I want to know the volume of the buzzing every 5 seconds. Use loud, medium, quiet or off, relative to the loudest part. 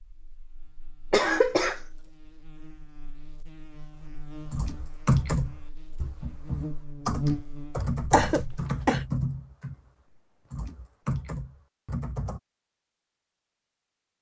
quiet, loud, off.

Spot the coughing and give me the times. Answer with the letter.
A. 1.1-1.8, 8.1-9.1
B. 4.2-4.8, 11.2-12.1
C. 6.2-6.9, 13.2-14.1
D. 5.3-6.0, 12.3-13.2
A.